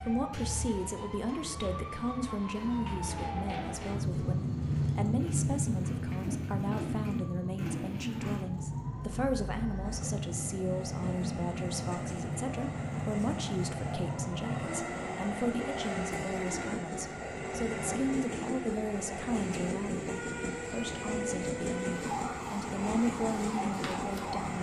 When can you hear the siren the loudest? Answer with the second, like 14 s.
5 s.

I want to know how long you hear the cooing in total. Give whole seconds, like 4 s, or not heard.
4 s.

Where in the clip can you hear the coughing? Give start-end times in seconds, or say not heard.
not heard.